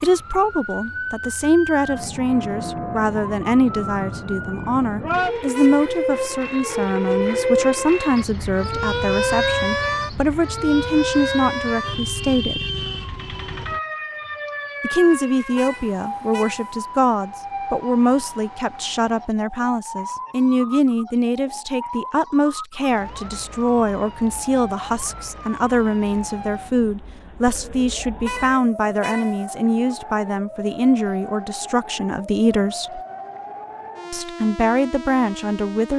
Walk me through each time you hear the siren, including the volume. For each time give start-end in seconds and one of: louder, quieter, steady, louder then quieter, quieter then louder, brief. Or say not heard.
0.0-35.9 quieter.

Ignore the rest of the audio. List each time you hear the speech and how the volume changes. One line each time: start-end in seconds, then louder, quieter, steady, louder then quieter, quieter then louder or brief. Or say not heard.
0.0-12.7 steady
14.8-33.0 steady
34.1-35.9 brief.